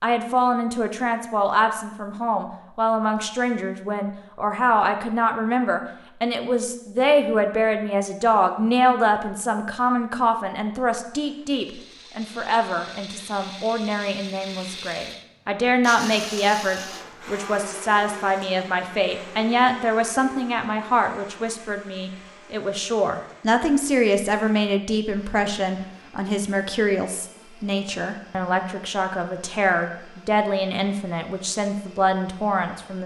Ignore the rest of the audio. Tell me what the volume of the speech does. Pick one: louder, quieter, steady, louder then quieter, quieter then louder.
steady.